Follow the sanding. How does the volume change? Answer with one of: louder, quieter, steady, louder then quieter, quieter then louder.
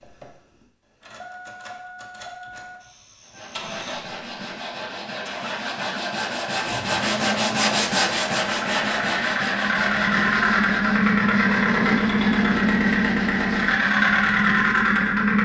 louder then quieter.